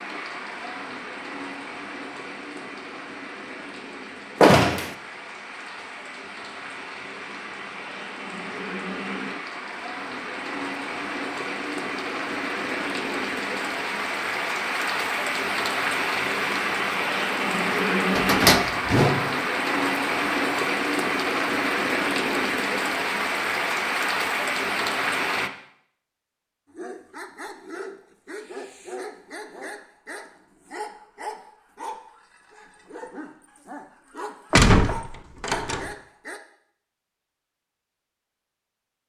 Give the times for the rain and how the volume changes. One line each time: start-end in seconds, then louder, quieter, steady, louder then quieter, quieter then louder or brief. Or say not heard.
0.0-25.5 louder.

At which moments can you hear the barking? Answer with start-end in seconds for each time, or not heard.
26.7-36.4.